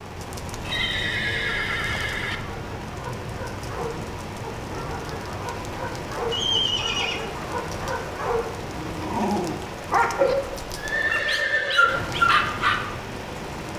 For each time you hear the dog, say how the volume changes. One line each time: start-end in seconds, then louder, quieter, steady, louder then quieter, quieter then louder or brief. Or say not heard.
2.2-12.8 louder.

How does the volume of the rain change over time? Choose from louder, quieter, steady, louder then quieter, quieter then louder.
steady.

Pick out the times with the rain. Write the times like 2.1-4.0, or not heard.
0.0-13.7.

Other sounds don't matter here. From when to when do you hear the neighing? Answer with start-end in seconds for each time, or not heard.
0.7-2.4, 6.3-7.2, 10.2-12.1.